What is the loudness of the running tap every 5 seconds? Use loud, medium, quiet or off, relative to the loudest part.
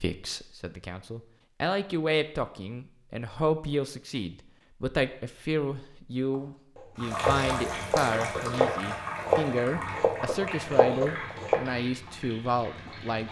off, loud, medium.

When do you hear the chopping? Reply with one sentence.
You can hear the chopping from 6.3 to 11.6 s.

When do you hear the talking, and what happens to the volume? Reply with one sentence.
The talking can be heard from 0.0 to 13.2 s, at a steady volume.